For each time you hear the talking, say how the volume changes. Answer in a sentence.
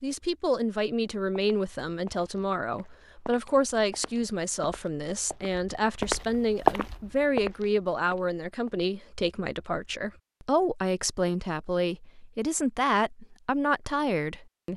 You can hear the talking from 0.0 to 14.7 s, at a steady volume.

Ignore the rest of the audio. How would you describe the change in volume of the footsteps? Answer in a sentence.
The volume of the footsteps goes up, then down.